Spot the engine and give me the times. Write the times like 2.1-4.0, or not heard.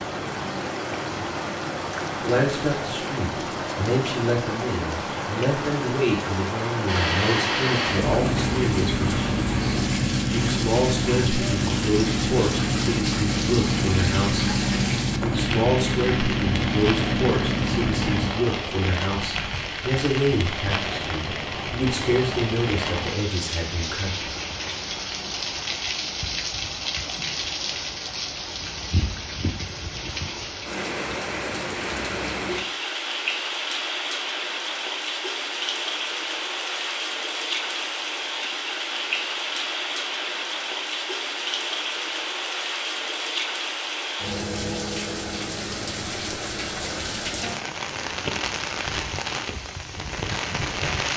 6.8-18.3.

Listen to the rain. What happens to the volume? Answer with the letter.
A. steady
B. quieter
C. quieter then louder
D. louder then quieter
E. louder
A.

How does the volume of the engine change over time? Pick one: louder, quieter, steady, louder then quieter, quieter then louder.
steady.